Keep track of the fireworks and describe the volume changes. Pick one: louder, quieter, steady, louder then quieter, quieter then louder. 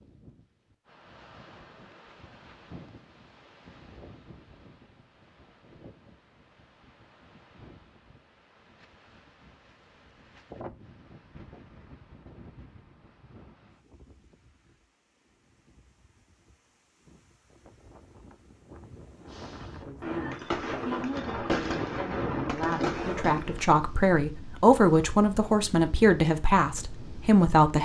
louder.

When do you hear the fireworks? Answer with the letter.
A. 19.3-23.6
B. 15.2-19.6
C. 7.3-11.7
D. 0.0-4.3
A.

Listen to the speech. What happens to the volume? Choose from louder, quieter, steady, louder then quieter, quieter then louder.
louder.